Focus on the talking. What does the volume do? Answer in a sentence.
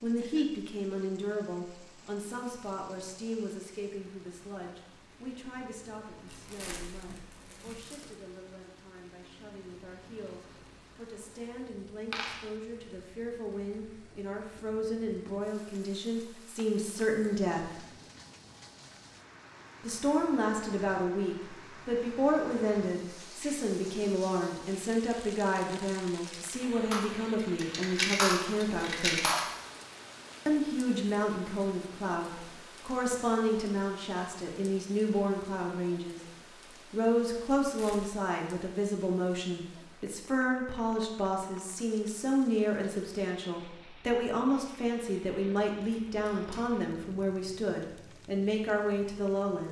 The loudness of the talking goes up.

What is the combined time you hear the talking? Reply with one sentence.
You can hear the talking for 46 seconds altogether.